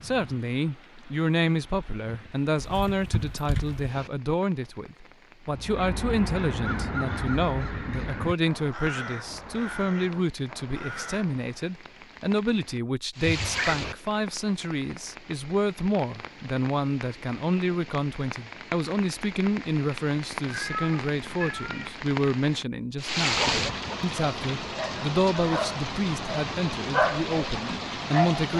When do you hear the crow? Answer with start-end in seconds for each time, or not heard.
5.5-11.6.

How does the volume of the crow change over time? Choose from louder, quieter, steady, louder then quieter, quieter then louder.
quieter.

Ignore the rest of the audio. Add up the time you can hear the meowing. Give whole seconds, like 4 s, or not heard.
3 s.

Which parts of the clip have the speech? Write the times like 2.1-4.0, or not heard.
0.0-28.5.